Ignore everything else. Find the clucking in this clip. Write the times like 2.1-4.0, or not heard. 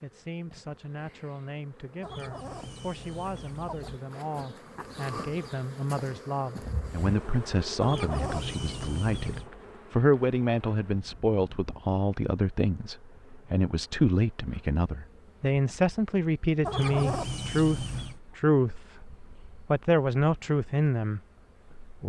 2.0-4.0, 7.8-9.5, 16.6-18.2.